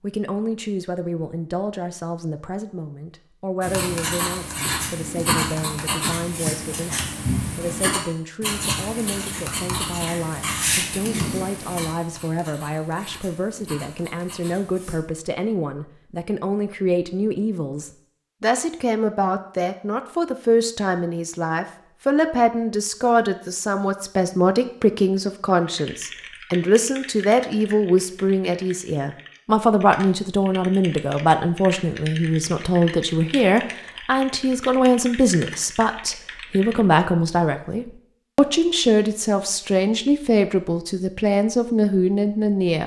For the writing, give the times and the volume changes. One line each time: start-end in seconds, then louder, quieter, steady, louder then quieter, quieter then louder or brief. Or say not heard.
3.6-15.0 quieter.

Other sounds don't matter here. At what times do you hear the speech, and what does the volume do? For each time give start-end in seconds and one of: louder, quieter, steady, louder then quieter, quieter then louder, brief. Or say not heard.
0.0-42.8 louder.